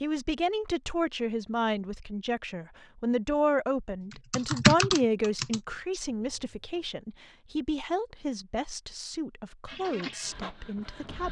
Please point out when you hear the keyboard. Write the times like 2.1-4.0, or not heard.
4.1-6.8.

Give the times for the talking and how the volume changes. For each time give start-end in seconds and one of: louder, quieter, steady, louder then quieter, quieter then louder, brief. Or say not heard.
0.0-11.2 quieter.